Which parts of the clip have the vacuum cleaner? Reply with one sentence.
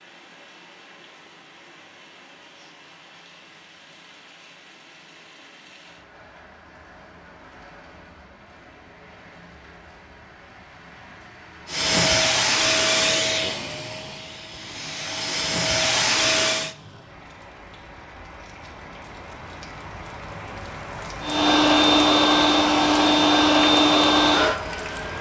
You can hear the vacuum cleaner from 11.7 to 16.8 s and from 21.2 to 25.1 s.